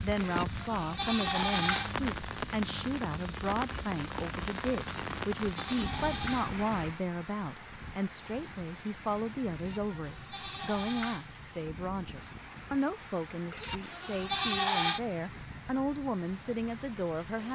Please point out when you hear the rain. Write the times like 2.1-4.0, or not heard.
0.0-17.5.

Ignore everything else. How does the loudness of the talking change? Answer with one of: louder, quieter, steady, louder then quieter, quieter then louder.
steady.